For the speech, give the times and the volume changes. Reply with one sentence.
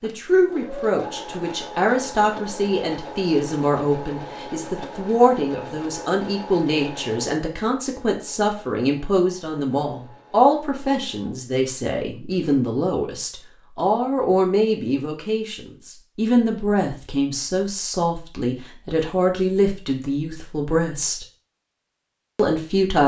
You can hear the speech from 0.0 to 21.2 s, at a steady volume; and briefly from 22.4 to 23.0 s.